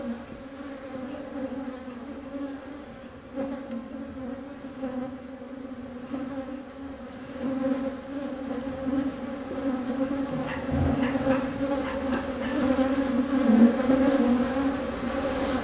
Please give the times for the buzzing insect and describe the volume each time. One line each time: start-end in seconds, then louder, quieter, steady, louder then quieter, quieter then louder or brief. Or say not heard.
0.0-15.6 louder.